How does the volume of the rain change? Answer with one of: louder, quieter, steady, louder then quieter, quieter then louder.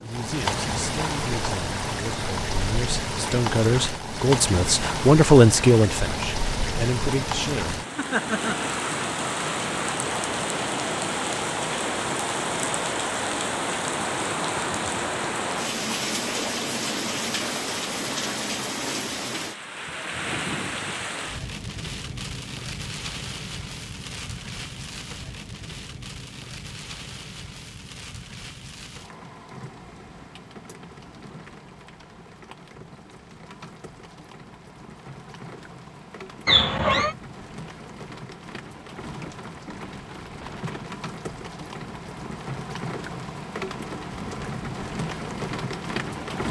quieter then louder.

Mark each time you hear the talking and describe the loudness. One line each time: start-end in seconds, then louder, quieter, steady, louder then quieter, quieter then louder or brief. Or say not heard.
0.0-7.8 louder then quieter.